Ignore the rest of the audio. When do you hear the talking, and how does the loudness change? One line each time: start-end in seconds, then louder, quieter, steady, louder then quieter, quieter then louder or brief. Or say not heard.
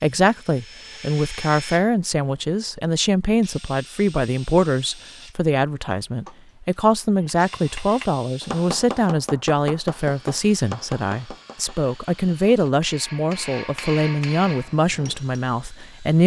0.0-16.2 steady.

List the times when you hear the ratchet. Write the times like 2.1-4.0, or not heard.
not heard.